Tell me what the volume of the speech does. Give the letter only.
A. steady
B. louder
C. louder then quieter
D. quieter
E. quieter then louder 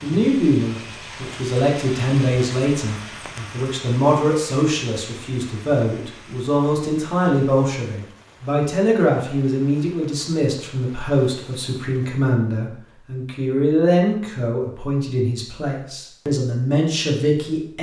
A.